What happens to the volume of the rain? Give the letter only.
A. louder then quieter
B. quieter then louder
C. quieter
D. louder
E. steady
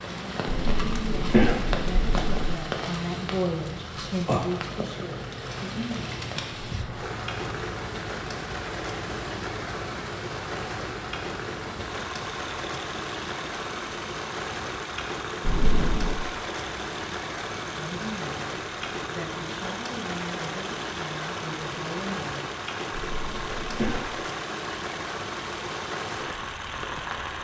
E.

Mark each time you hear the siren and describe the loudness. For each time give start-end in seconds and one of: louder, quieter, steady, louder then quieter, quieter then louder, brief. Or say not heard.
not heard.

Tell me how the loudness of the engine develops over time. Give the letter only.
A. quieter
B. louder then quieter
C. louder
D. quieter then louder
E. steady
E.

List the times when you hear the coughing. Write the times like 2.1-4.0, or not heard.
0.5-2.5, 15.4-16.2, 23.1-24.1.